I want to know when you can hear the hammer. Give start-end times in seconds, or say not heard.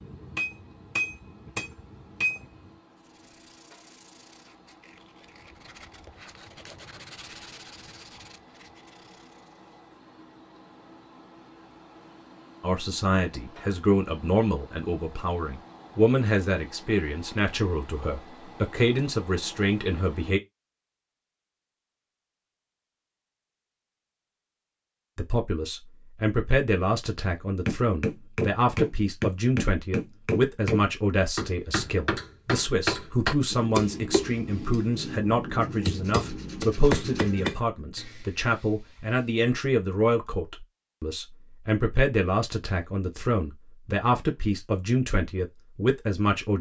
0.0-2.7, 27.6-37.5.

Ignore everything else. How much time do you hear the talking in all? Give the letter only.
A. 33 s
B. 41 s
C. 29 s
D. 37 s
C.